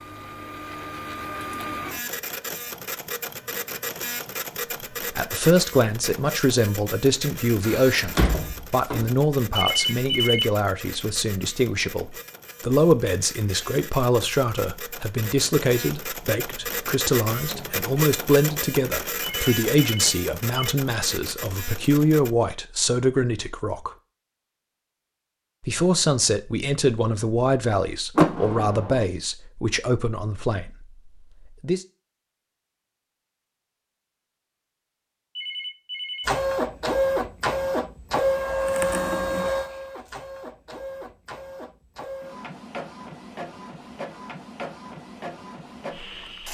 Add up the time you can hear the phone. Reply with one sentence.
You can hear the phone for 3 seconds altogether.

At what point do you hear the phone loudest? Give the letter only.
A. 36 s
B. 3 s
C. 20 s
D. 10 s
D.